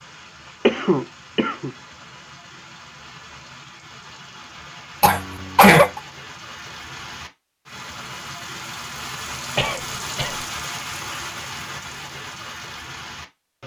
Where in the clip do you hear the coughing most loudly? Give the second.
6 s.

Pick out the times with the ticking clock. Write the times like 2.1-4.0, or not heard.
not heard.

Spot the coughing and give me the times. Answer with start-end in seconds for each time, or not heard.
0.7-1.7, 5.0-6.0, 9.6-10.4.